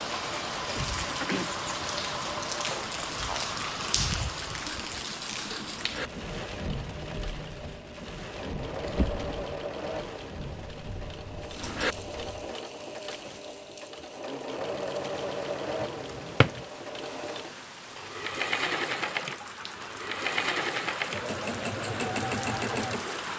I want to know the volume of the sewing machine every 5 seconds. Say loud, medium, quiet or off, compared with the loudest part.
medium, medium, medium, loud, loud.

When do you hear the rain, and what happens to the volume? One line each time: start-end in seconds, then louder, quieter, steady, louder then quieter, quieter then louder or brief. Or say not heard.
0.0-23.3 quieter then louder.